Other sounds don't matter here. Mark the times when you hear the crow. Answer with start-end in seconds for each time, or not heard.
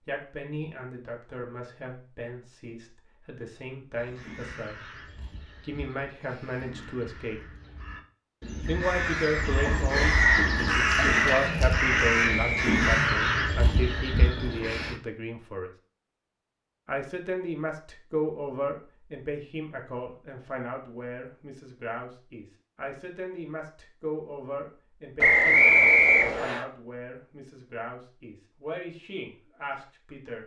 4.0-14.9.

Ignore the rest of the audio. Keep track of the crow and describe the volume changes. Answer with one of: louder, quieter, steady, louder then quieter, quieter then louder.
louder.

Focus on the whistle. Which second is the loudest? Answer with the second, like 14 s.
26 s.